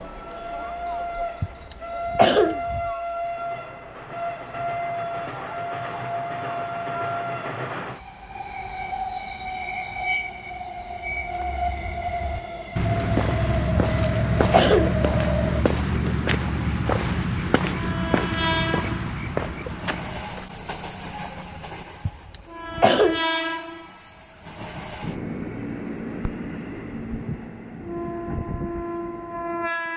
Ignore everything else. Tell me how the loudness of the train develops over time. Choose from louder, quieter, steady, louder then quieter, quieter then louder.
steady.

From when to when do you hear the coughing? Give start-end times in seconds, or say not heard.
1.4-2.9, 13.8-15.1, 22.1-23.2.